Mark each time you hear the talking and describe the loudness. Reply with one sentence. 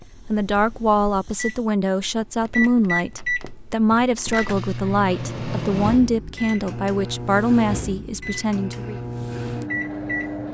The talking can be heard from 0.3 to 9.0 s, at a steady volume.